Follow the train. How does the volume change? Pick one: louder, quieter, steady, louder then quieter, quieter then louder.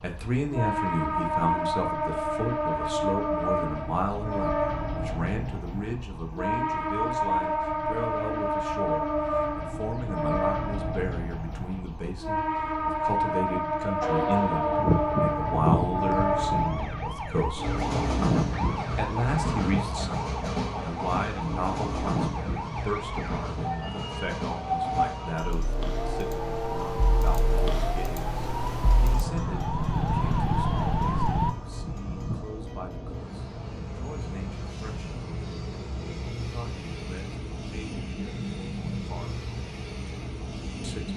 quieter.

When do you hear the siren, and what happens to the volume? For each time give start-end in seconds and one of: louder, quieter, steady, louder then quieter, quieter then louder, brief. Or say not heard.
14.0-31.6 quieter then louder.